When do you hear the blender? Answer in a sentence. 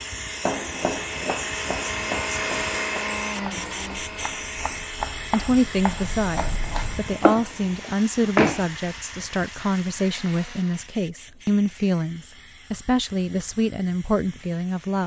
You can hear the blender from 0.0 to 11.1 s.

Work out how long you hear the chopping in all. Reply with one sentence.
You can hear the chopping for 8 seconds altogether.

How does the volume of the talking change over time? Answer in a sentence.
The volume of the talking stays about the same.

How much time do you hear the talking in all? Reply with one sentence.
You can hear the talking for 10 seconds altogether.